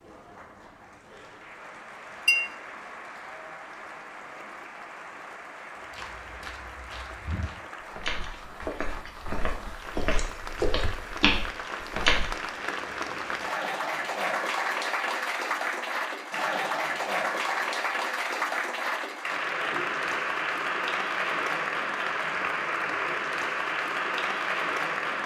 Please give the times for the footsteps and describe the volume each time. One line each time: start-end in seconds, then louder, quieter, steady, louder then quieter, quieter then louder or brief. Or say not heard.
5.8-12.3 louder.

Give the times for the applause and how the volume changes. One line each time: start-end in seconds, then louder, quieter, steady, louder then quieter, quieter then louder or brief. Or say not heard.
0.0-25.2 louder.